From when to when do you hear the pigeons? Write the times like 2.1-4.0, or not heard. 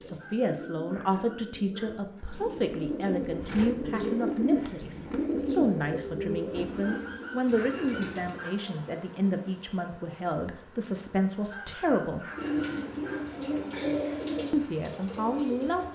0.0-8.4, 12.3-15.8.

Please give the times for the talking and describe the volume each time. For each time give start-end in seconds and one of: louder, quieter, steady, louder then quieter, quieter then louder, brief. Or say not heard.
0.0-12.2 steady
14.5-15.8 brief.